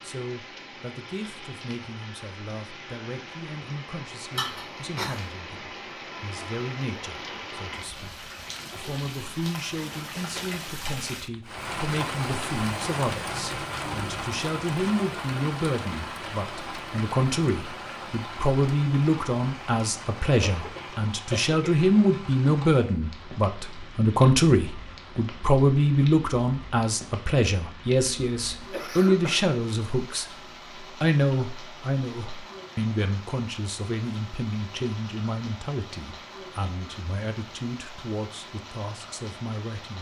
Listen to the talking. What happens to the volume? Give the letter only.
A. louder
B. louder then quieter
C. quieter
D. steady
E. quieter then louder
B.